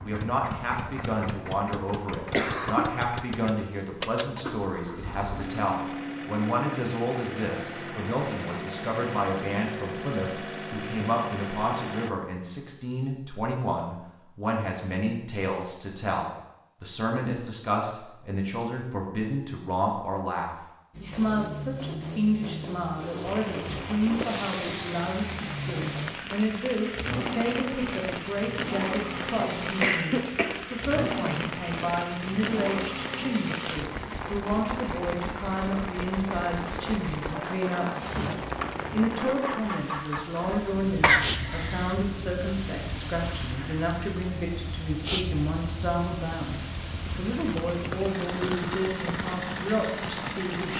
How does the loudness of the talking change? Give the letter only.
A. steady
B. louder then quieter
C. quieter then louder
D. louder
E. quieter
A.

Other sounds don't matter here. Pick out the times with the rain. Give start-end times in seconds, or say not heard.
23.2-50.7.